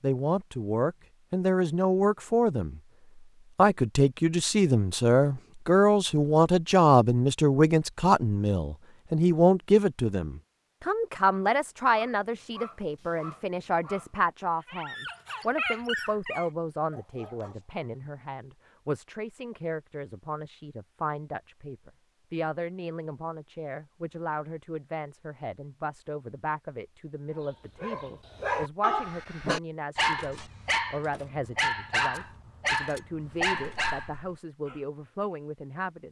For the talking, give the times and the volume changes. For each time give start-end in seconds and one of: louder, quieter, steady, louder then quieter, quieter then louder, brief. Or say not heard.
0.0-2.8 brief
3.5-36.0 quieter.